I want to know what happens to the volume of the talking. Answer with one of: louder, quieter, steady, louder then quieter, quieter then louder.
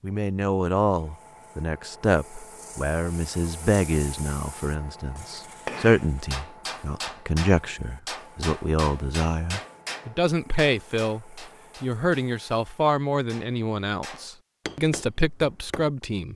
steady.